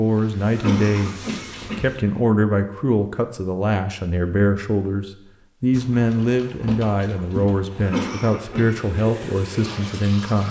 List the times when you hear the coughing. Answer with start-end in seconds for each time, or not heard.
0.6-1.9, 7.8-8.8.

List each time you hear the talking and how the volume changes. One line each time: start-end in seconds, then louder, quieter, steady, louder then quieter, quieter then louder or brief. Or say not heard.
0.0-10.4 steady.